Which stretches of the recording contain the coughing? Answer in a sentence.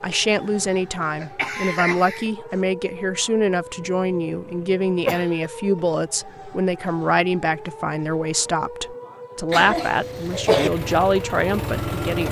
You can hear the coughing from 0.6 to 2.3 s, from 5.0 to 5.5 s and from 9.5 to 10.7 s.